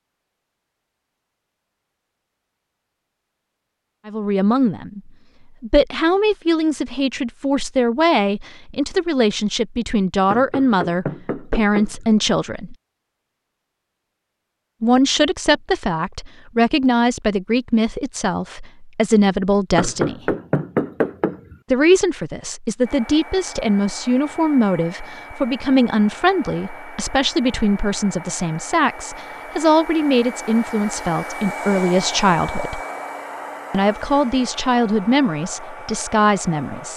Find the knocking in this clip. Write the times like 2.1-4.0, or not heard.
10.3-12.1, 19.8-21.6.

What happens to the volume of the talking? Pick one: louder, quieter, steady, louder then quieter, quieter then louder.
steady.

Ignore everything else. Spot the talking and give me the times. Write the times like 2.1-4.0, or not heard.
4.0-12.8, 14.8-20.4, 21.7-32.8, 33.7-36.9.